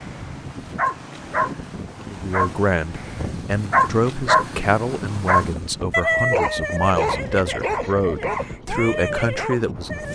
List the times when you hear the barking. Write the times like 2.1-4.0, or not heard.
0.0-10.1.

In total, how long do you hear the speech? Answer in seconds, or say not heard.
8 s.